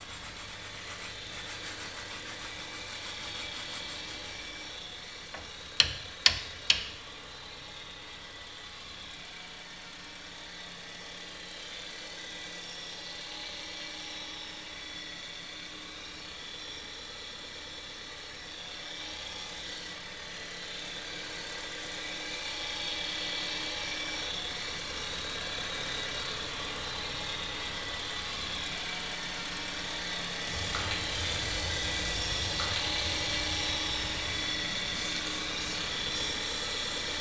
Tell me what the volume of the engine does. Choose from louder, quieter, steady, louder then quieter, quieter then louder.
louder.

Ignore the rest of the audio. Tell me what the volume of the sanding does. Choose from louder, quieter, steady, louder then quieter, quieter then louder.
steady.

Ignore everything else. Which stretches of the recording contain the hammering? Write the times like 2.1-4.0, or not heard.
5.3-6.9.